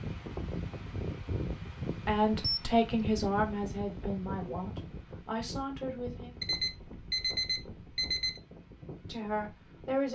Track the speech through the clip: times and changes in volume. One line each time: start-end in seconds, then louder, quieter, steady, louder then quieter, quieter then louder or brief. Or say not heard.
2.0-6.3 quieter
9.1-10.0 brief.